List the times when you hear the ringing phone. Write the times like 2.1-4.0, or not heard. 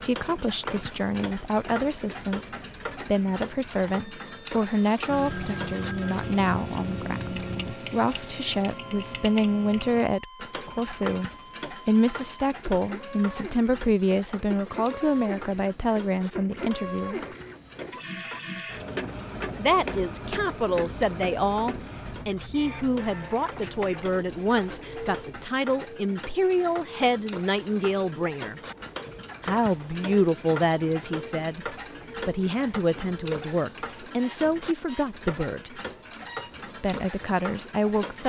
5.0-7.8.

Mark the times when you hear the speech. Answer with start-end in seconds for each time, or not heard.
0.0-17.2, 19.6-28.6, 29.4-35.7, 36.8-38.2.